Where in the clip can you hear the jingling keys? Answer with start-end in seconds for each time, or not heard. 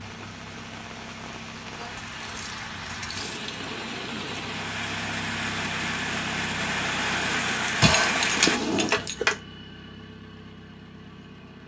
2.0-3.5, 7.8-9.3.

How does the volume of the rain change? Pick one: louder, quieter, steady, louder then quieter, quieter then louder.
louder.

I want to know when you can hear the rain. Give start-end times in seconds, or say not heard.
0.0-8.6.